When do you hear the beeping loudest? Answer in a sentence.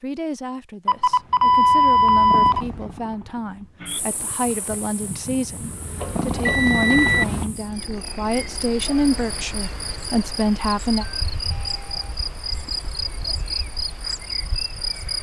The volume of the beeping peaks at 2 seconds.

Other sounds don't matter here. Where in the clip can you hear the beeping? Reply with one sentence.
You can hear the beeping from 0.8 to 2.6 s, from 6.0 to 7.2 s and from 11.0 to 12.2 s.